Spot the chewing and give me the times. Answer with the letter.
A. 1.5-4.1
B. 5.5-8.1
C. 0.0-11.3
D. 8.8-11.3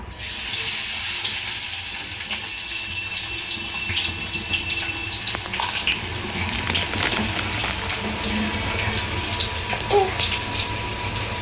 B.